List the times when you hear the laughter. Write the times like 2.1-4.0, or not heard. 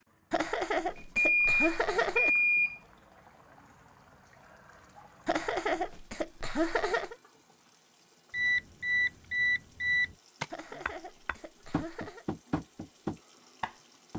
0.3-2.3, 5.2-7.2, 10.5-12.2.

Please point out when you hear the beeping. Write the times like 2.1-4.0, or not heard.
0.8-2.8, 8.3-10.1.